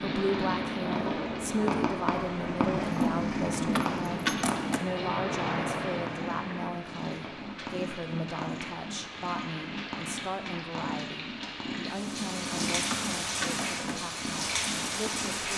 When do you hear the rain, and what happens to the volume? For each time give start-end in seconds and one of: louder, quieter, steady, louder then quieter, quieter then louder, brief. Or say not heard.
0.0-15.5 quieter then louder.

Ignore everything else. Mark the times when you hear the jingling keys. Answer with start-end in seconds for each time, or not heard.
2.8-4.8, 11.9-13.9.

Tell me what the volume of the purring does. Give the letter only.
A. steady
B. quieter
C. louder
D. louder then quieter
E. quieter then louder
B.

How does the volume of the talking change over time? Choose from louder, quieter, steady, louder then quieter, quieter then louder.
quieter.